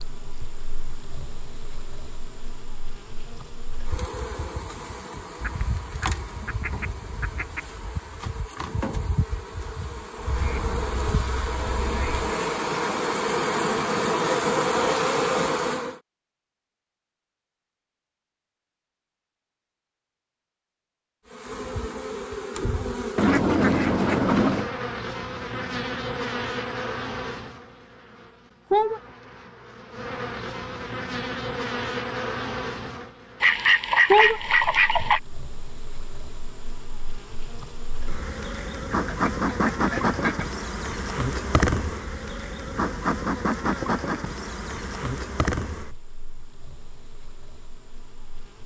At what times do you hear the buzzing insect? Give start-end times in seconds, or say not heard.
0.0-15.9, 21.2-48.6.